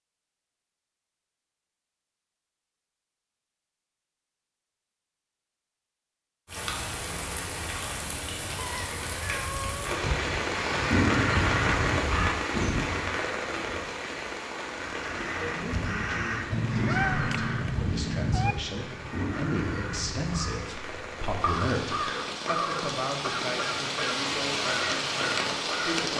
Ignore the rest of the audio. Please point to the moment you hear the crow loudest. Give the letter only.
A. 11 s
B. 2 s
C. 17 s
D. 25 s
A.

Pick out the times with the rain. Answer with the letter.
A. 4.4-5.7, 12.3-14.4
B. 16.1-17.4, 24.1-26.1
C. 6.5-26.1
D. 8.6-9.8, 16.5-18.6
C.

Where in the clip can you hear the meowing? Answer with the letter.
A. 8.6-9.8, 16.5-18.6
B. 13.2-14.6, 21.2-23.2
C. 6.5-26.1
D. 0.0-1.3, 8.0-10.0
A.